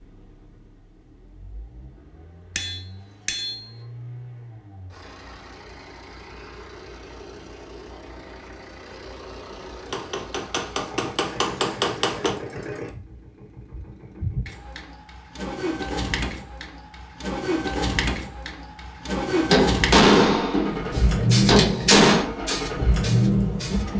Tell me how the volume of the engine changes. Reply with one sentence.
The volume of the engine goes up.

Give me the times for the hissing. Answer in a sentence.
The hissing can be heard from 20.9 to 23.9 s.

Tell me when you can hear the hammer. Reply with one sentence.
You can hear the hammer from 2.5 to 3.6 s, from 9.9 to 12.3 s and from 19.4 to 22.2 s.